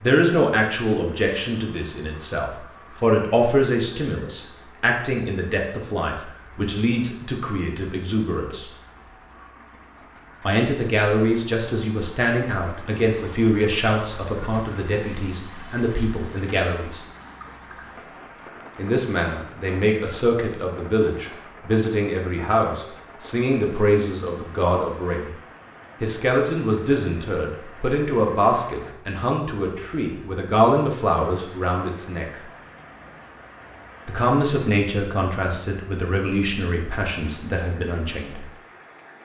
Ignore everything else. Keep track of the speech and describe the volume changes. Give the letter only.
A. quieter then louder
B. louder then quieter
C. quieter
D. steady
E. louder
D.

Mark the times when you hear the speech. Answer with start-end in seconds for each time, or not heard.
0.0-8.7, 10.4-17.0, 18.8-25.3, 26.0-32.4, 34.0-38.5.